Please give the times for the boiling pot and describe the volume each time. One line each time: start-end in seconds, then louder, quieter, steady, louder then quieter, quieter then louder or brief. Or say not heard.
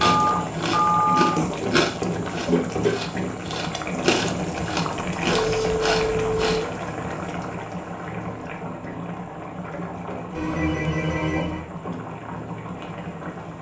0.0-13.5 quieter.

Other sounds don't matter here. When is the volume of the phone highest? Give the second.
1 s.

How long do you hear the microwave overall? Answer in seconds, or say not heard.
not heard.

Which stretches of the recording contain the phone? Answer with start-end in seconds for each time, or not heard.
0.0-1.3, 5.3-6.7, 10.3-11.7.